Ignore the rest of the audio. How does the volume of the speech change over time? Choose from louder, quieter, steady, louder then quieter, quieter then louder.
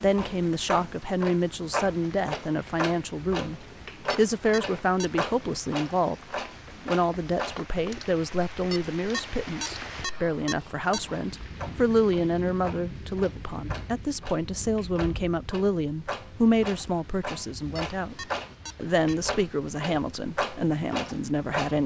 steady.